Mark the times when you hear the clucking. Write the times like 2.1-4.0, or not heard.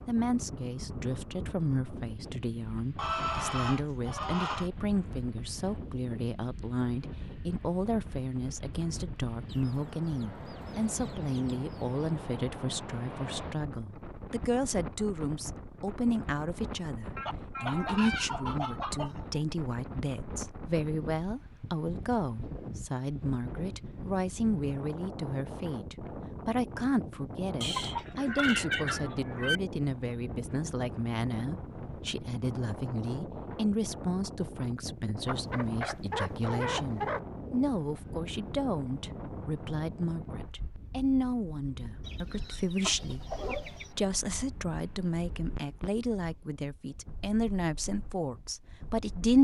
3.0-4.7, 9.4-12.0, 17.1-19.4, 27.6-29.6, 35.2-37.2, 42.0-43.9.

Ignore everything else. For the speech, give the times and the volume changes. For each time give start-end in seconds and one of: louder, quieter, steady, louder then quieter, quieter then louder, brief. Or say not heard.
0.1-49.3 steady.